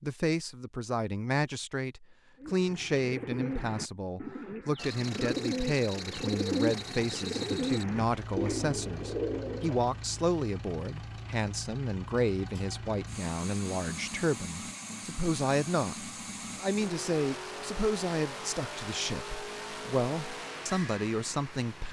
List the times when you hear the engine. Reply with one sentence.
The engine can be heard from 4.8 to 21.8 s.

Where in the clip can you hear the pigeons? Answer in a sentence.
You can hear the pigeons from 2.4 to 9.8 s.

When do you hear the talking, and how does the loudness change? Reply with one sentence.
You can hear the talking from 0.0 to 21.8 s, at a steady volume.